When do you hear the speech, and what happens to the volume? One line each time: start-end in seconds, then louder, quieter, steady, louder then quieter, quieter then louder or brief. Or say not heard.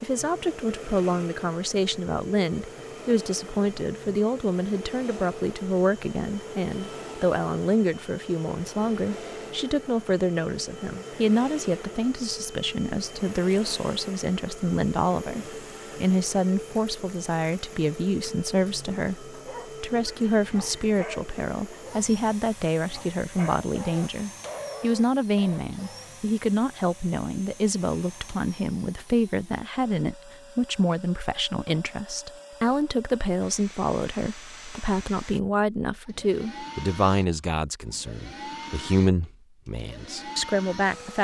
0.0-41.1 steady.